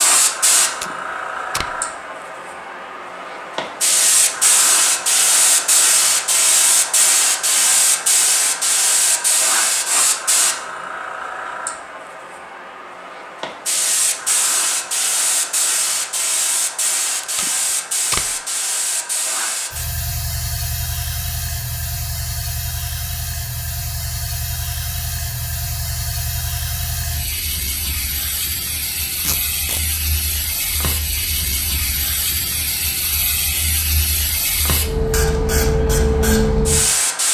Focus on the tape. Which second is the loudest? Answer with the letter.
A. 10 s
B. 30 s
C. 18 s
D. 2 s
C.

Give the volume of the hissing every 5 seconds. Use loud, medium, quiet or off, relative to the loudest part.
loud, loud, medium, medium, medium, medium, medium, loud.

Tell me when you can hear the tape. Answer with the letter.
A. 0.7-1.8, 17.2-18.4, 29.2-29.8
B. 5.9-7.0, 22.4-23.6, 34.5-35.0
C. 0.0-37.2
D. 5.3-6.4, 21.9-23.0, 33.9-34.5
A.